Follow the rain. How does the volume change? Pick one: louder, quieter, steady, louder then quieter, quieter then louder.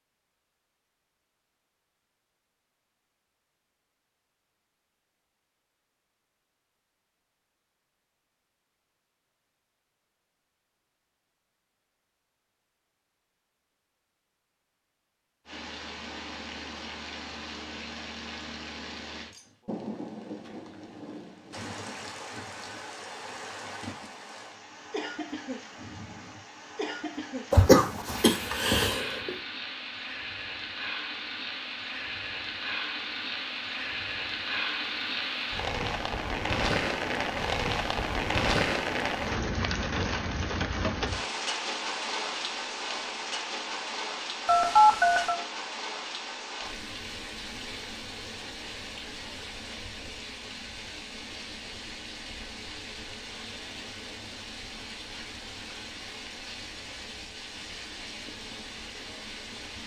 louder then quieter.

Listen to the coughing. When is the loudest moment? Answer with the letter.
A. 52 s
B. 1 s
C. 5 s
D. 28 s
D.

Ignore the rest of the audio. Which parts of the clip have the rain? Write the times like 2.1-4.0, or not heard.
15.4-59.8.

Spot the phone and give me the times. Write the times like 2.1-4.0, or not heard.
44.5-45.4.